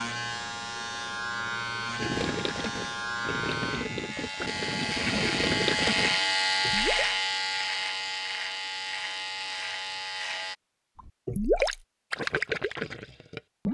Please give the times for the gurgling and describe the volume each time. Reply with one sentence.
You can hear the gurgling from 1.9 to 7.2 s, getting louder then quieter; and briefly from 10.9 to 13.7 s.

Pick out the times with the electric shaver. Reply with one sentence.
The electric shaver can be heard from 0.0 to 10.6 s.